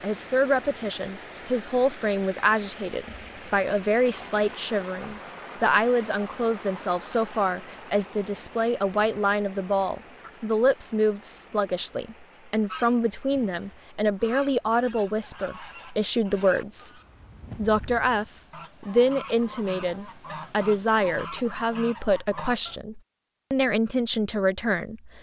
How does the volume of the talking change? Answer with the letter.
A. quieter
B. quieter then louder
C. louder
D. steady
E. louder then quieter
D.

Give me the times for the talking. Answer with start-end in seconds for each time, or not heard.
0.0-16.9, 17.6-25.1.